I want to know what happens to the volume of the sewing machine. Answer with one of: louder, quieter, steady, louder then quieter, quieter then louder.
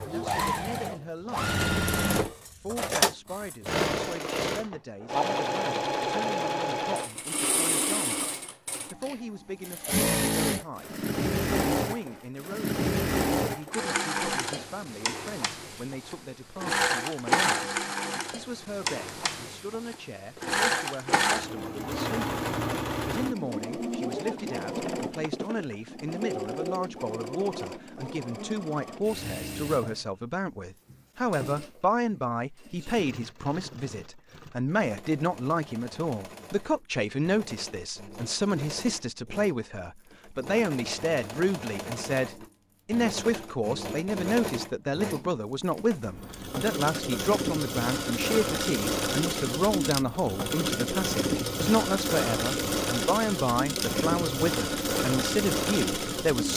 quieter then louder.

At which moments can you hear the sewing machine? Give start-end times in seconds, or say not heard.
0.0-56.5.